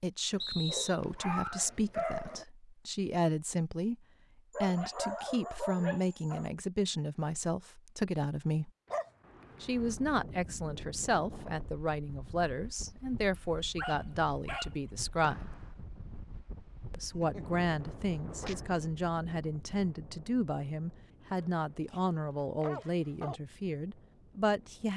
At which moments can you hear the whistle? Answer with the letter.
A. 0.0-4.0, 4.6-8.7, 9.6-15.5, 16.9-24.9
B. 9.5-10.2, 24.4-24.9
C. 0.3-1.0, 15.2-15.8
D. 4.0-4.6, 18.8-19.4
C.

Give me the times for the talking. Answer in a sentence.
You can hear the talking from 0.0 to 4.0 s, from 4.6 to 8.7 s, from 9.6 to 15.5 s and from 16.9 to 24.9 s.